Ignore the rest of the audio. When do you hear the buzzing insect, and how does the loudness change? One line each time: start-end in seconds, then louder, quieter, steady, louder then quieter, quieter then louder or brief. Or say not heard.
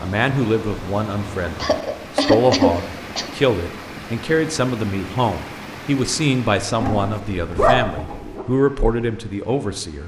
not heard.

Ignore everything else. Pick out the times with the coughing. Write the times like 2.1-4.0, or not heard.
1.6-3.3.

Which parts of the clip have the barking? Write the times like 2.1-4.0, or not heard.
6.8-8.4.